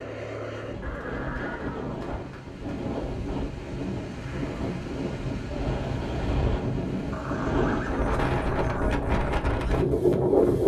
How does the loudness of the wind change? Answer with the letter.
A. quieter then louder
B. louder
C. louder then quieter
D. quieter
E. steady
B.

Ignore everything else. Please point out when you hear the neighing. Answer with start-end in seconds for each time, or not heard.
0.8-2.6, 7.1-8.8.